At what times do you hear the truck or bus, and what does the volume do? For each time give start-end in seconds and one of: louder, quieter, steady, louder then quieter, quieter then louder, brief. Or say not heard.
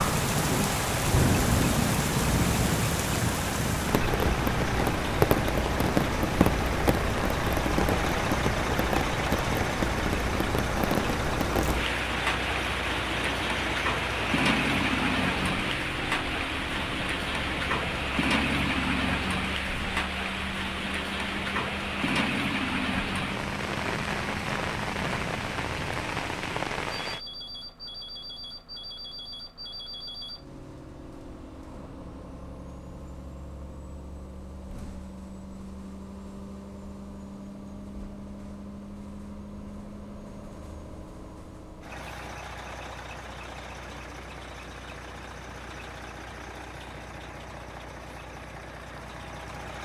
0.1-49.8 quieter.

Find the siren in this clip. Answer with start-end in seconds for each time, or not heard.
not heard.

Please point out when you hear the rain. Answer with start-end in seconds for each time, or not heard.
0.0-27.2.